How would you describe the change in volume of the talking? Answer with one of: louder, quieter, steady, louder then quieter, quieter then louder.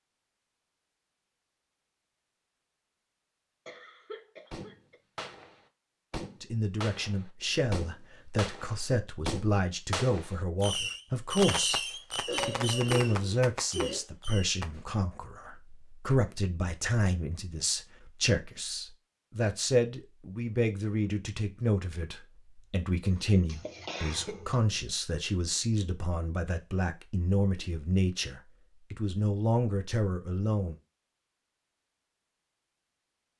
steady.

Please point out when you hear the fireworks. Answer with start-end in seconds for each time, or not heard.
4.5-14.7.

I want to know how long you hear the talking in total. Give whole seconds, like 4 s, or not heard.
24 s.